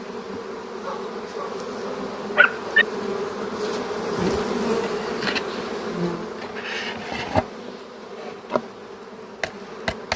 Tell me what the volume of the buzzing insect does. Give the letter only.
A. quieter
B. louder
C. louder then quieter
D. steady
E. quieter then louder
C.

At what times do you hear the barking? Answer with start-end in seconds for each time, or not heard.
0.8-2.9.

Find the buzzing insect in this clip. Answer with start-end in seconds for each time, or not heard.
0.0-10.1.